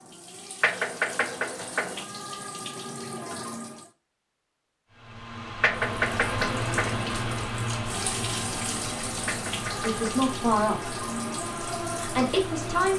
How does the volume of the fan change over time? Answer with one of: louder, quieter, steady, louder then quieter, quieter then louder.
quieter.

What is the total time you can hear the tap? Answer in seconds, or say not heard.
11 s.